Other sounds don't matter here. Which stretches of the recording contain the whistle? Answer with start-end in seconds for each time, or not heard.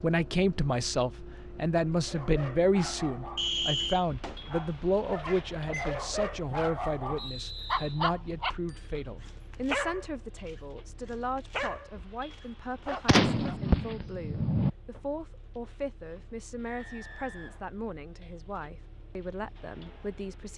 3.4-4.0, 7.2-8.1, 16.6-17.6.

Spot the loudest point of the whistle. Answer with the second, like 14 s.
4 s.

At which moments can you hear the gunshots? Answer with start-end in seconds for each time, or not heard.
13.1-14.7.